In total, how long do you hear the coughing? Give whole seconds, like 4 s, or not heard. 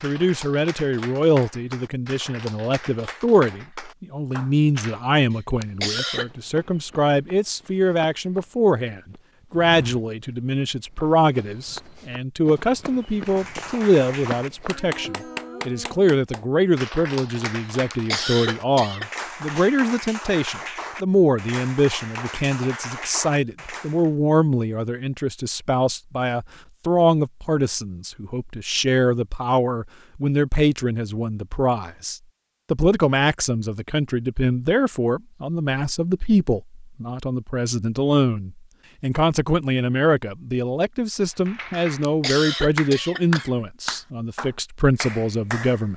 4 s.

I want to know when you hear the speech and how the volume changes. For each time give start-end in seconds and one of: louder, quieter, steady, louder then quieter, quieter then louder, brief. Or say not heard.
0.0-45.9 steady.